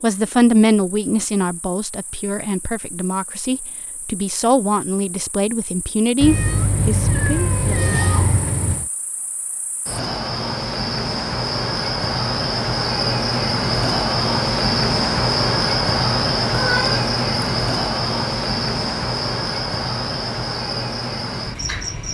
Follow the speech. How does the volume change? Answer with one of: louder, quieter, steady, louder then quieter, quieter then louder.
quieter then louder.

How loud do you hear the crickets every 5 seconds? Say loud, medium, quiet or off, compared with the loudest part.
quiet, quiet, loud, loud, medium.